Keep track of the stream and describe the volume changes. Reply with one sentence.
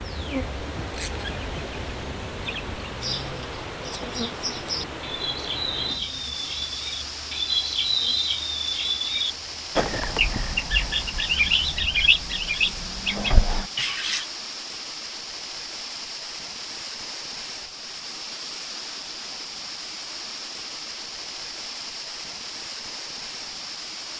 The loudness of the stream stays about the same.